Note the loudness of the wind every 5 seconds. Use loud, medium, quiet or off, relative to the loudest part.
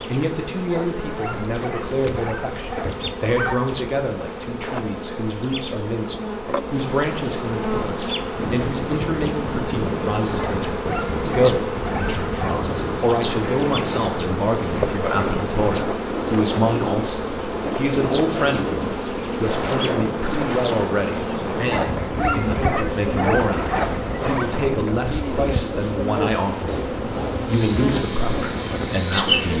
off, loud, loud, loud, loud, loud.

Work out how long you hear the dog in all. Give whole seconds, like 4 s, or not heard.
8 s.